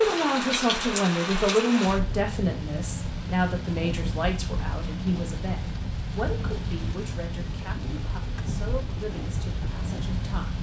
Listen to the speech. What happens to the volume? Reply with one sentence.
The volume of the speech goes down.